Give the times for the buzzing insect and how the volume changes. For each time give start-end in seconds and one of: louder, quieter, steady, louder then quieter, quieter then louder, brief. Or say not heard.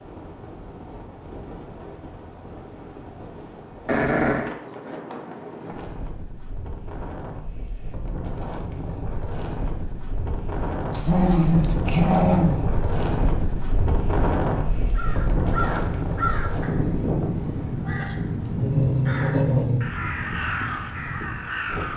not heard.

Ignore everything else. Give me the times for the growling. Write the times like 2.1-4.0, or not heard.
3.9-4.5, 10.9-12.6, 18.0-19.8.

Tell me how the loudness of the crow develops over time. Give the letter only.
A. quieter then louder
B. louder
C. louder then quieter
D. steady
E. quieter
A.